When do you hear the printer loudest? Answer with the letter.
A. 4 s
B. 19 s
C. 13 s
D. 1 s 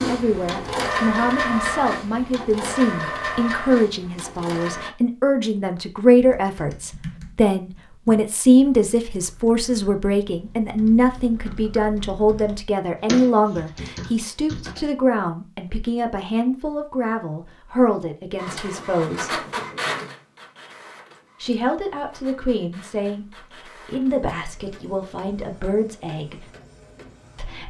D.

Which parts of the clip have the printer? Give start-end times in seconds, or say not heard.
0.0-4.9, 18.4-27.6.